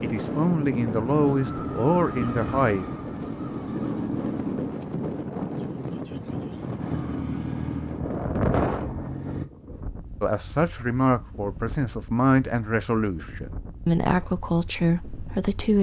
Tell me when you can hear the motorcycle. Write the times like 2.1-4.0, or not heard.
0.0-4.7, 6.8-9.4.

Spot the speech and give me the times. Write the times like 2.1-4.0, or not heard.
0.0-2.9, 10.2-15.7.